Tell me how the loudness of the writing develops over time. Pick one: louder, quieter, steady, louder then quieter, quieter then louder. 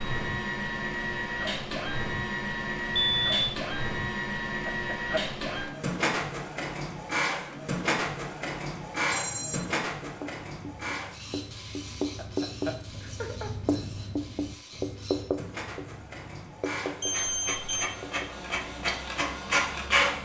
louder then quieter.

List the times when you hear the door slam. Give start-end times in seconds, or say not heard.
not heard.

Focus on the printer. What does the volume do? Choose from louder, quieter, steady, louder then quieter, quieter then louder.
quieter then louder.